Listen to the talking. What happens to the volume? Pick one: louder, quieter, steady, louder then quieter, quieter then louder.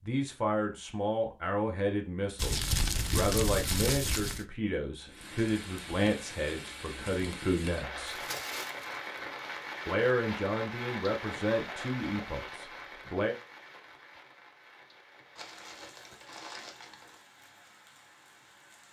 steady.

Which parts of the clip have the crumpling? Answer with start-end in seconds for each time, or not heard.
2.4-4.5, 8.1-8.9, 15.3-17.2.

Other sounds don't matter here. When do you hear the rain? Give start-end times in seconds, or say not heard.
5.0-18.8.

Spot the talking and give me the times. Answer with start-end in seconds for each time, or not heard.
0.1-8.2, 9.8-13.3.